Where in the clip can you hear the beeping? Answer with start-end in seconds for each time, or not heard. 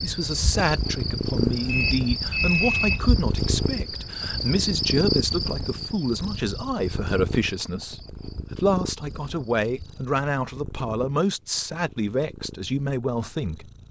1.6-3.1.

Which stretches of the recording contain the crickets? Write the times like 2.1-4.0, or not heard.
0.0-10.1.